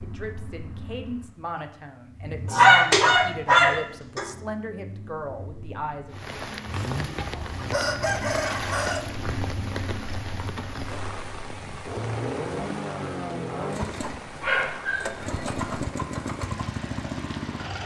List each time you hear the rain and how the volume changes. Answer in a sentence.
The rain can be heard from 6.1 to 17.8 s, getting quieter.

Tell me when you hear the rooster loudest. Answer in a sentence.
The volume of the rooster peaks at 8 seconds.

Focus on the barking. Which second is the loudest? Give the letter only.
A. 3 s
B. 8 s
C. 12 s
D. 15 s
A.